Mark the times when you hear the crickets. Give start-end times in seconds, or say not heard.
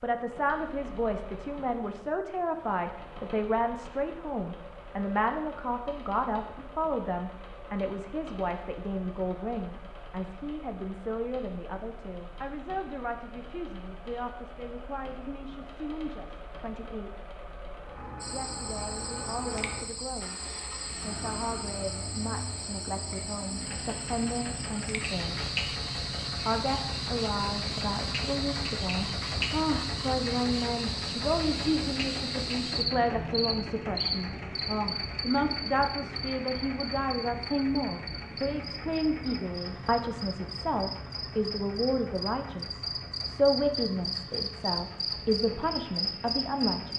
18.2-46.9.